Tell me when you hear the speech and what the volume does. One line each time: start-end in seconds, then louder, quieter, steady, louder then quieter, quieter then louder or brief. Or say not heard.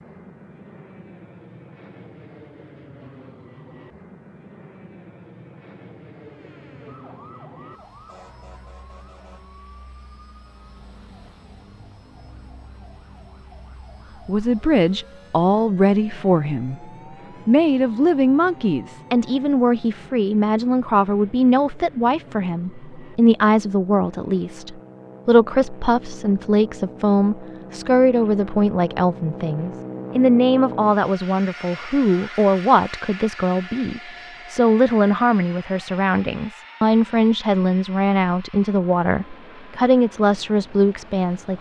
14.2-16.9 brief
17.4-41.5 steady.